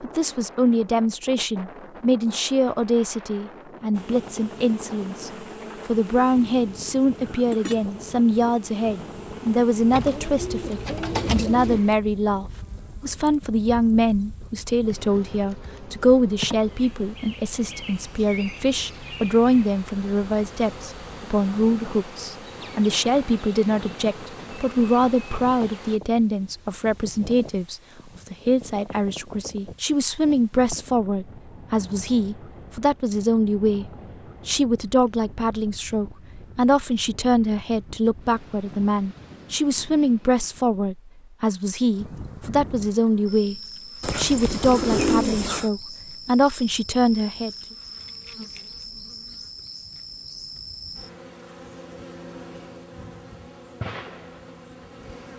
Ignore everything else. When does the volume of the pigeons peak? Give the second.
45 s.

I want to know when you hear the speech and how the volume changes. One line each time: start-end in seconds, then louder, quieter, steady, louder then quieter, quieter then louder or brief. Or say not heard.
0.0-47.5 steady.